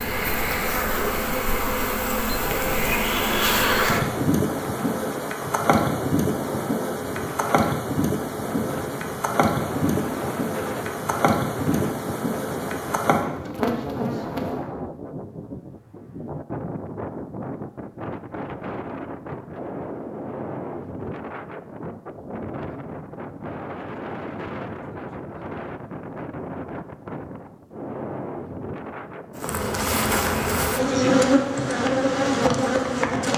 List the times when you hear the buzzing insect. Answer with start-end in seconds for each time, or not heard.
0.0-14.6, 29.4-33.3.